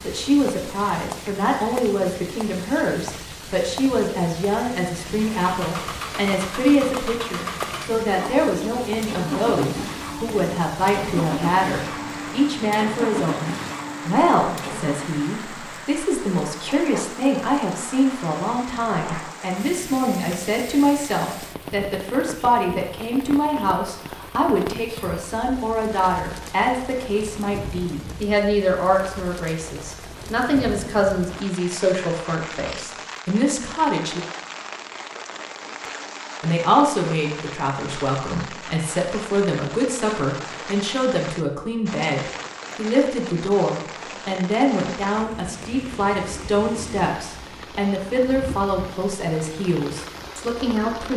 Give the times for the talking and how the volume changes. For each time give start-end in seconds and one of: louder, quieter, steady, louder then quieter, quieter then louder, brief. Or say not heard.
0.0-34.2 steady
36.4-51.1 steady.